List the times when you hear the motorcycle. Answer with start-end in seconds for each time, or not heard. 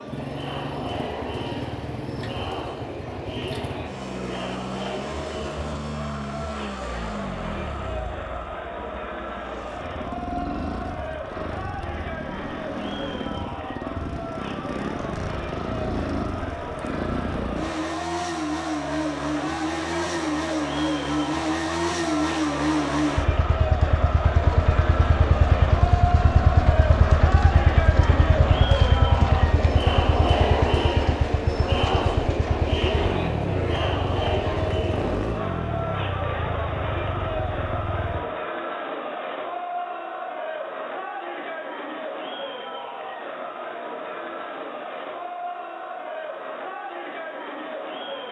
0.0-38.2.